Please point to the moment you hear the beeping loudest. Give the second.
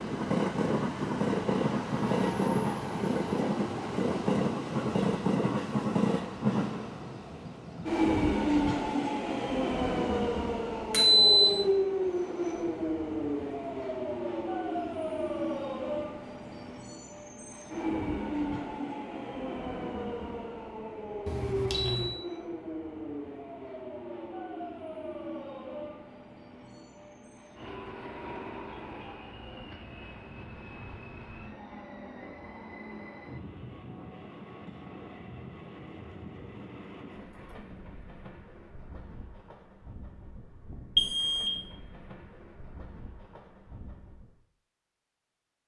11 s.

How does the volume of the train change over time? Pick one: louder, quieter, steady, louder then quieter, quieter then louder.
quieter.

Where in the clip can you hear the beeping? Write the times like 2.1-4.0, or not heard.
10.9-11.6, 21.2-22.1, 41.0-41.5.